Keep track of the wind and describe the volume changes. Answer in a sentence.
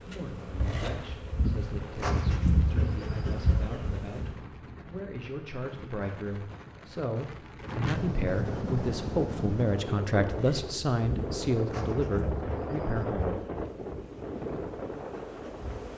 The loudness of the wind goes up.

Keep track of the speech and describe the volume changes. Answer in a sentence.
The loudness of the speech goes up.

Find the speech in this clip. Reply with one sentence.
You can hear the speech from 0.1 to 13.3 s.